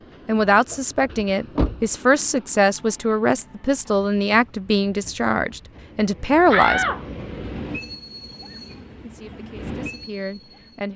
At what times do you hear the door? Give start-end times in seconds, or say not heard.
0.5-1.9, 6.5-7.2.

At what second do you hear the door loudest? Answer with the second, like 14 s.
7 s.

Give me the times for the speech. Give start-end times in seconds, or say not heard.
0.2-6.8, 9.0-10.9.